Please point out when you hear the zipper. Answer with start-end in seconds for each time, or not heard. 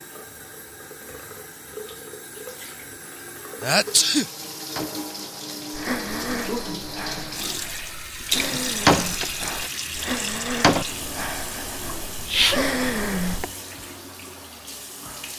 not heard.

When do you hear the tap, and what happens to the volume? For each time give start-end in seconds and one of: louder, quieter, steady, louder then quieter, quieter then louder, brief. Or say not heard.
0.0-15.3 louder then quieter.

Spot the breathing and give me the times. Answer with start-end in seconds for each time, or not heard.
5.7-13.5.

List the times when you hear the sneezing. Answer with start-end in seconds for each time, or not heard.
3.6-4.2, 11.8-12.7.